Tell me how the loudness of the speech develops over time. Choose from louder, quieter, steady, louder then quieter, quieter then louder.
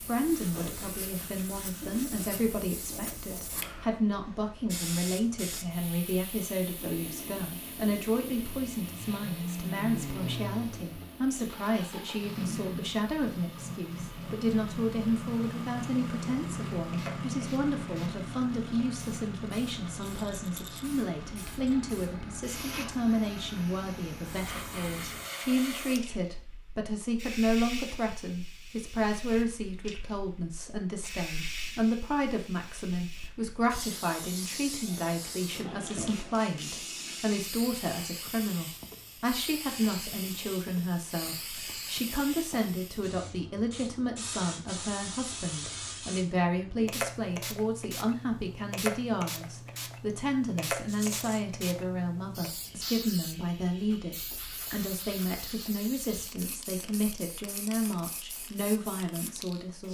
steady.